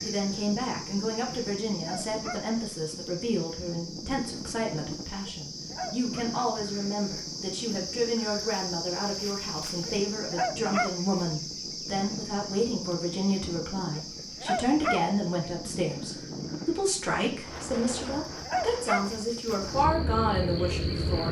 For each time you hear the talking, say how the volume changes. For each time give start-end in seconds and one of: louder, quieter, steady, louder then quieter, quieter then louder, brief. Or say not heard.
0.0-21.2 steady.